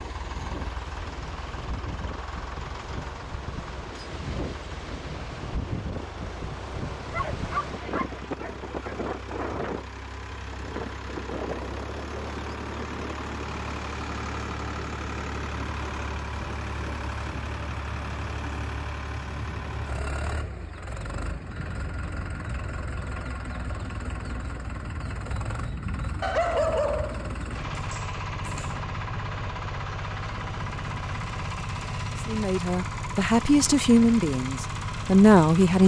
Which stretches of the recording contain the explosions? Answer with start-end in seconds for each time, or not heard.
not heard.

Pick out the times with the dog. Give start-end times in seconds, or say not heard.
7.1-8.8, 26.2-28.7.